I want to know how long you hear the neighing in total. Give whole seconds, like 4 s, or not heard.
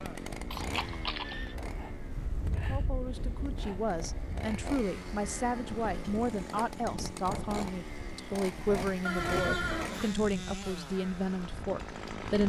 2 s.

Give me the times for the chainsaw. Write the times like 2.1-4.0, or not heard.
0.0-12.4.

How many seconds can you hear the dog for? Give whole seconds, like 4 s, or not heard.
not heard.